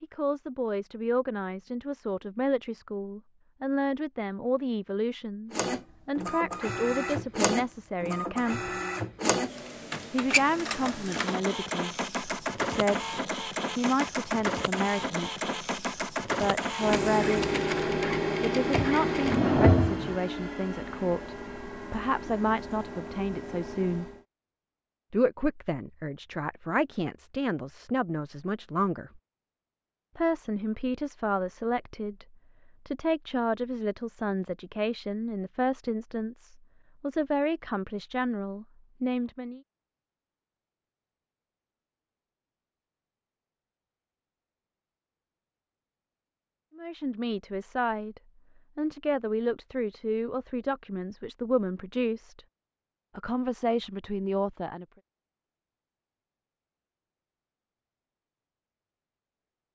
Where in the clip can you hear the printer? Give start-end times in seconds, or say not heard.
5.5-24.2.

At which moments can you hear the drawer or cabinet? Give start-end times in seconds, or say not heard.
18.7-20.1.